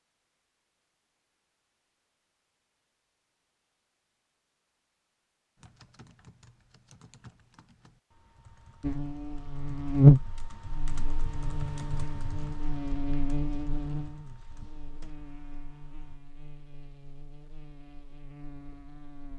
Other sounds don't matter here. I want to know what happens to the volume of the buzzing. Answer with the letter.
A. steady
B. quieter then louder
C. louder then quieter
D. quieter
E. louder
D.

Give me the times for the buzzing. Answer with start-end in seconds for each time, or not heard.
8.8-19.3.